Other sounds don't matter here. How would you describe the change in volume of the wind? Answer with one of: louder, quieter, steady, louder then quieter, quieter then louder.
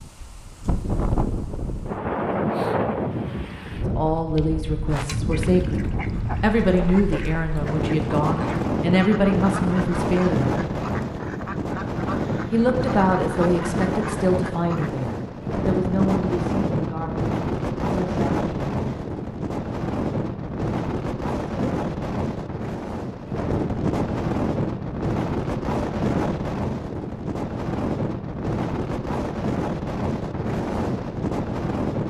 steady.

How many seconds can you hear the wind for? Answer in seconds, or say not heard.
32 s.